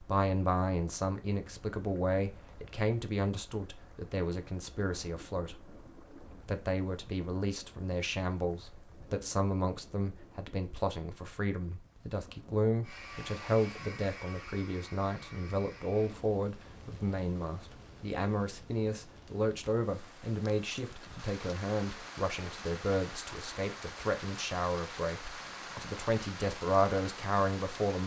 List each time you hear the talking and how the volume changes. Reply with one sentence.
The talking can be heard from 0.0 to 28.0 s, at a steady volume.